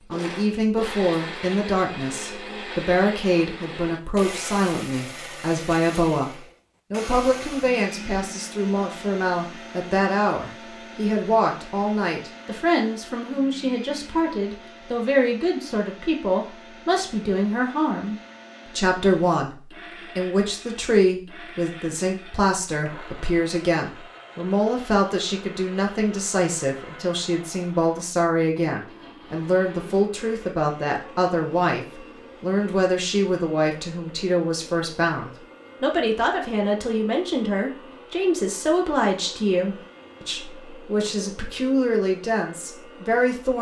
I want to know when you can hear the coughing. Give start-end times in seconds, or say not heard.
not heard.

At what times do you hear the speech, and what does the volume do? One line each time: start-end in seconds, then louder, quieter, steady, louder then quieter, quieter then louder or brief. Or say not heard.
0.1-43.5 steady.